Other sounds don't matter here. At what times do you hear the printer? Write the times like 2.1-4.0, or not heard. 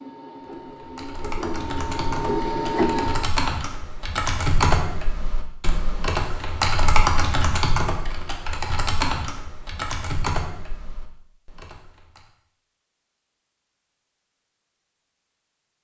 0.0-3.3.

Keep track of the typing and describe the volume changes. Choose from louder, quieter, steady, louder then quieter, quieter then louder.
louder then quieter.